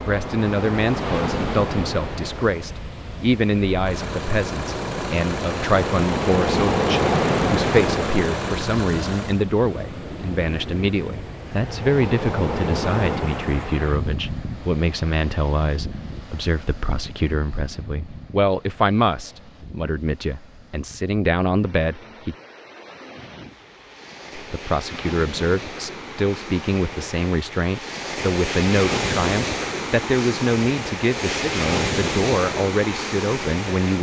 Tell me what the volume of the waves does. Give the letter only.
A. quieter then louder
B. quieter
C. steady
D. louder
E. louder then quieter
A.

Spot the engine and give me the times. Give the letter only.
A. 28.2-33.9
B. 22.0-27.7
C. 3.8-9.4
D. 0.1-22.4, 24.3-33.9
C.